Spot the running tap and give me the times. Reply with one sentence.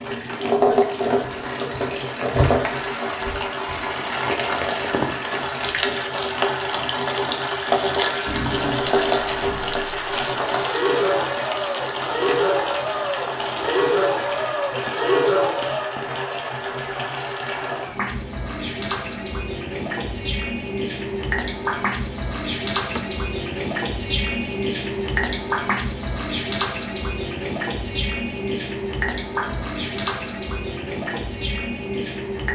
The running tap can be heard from 0.0 to 32.5 s.